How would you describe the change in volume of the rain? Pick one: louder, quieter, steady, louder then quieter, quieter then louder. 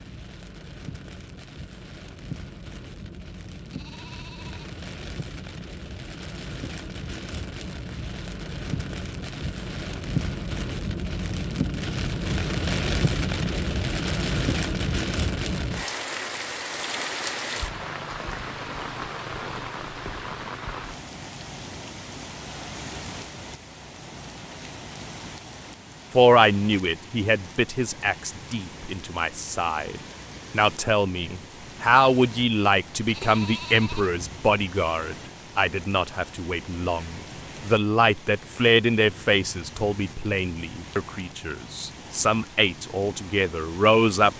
louder then quieter.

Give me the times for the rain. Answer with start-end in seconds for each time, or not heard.
0.0-44.3.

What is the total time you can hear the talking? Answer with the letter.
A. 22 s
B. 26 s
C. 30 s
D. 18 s
D.